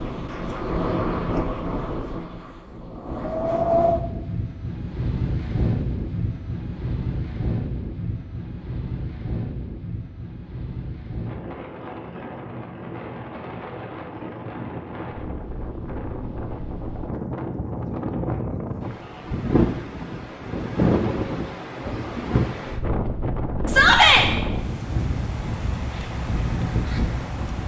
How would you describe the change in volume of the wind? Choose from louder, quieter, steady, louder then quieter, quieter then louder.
quieter then louder.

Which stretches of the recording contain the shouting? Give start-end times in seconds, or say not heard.
23.6-24.2.